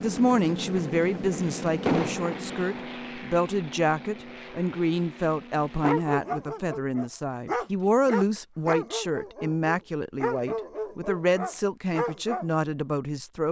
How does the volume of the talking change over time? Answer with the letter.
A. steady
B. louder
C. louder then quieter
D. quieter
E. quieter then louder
A.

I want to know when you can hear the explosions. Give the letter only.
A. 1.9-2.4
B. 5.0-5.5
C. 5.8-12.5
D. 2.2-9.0
A.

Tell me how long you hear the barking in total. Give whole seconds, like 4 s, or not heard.
7 s.